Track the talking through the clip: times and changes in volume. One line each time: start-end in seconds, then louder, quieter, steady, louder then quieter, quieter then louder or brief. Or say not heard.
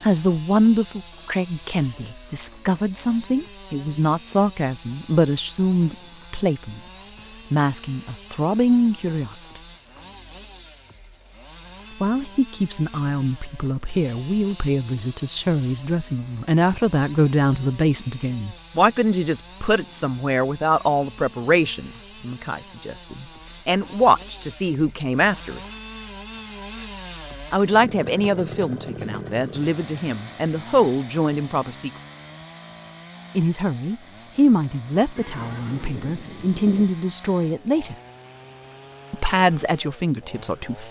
0.0-9.6 steady
12.0-25.6 steady
27.5-31.9 quieter then louder
33.4-38.0 quieter then louder
39.1-40.8 brief.